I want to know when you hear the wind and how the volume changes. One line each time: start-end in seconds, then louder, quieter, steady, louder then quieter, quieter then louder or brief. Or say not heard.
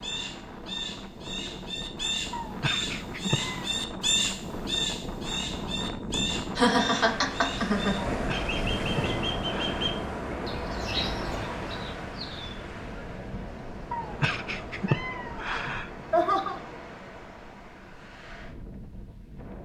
0.0-19.6 louder then quieter.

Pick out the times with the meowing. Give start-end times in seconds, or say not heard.
2.3-3.6, 8.1-9.9, 13.9-15.9.